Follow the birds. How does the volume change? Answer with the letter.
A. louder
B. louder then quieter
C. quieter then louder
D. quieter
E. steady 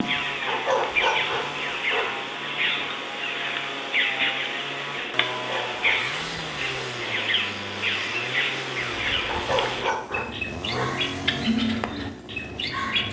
E.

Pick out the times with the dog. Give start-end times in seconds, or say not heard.
0.5-2.1, 5.4-6.9, 9.2-10.9.